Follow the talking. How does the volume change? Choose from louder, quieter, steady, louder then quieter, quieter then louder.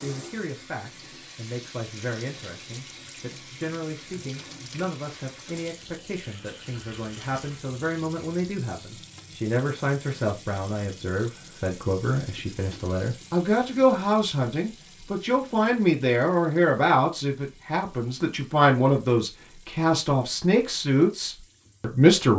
louder.